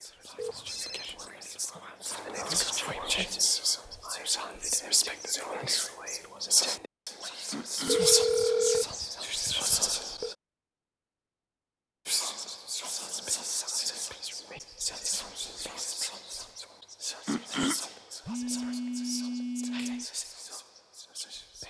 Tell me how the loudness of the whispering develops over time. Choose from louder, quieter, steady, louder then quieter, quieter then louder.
quieter.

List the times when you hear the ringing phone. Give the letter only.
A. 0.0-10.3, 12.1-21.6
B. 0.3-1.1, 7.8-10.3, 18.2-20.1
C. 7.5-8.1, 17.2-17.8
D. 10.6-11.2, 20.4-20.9
B.